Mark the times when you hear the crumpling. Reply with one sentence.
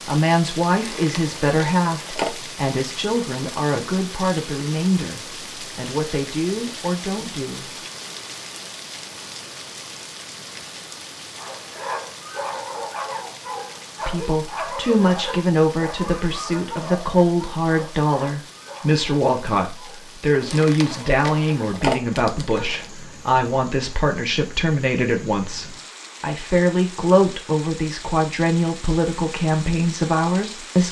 The crumpling can be heard from 0.8 to 2.4 s and from 20.4 to 22.9 s.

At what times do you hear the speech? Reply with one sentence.
You can hear the speech from 0.1 to 7.8 s and from 14.1 to 30.8 s.